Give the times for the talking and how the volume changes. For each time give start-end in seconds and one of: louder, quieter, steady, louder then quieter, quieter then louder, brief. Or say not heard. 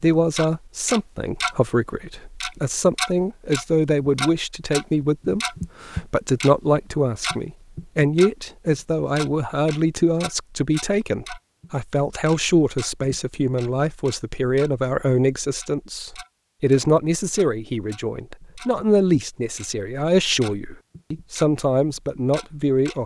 0.0-23.0 steady.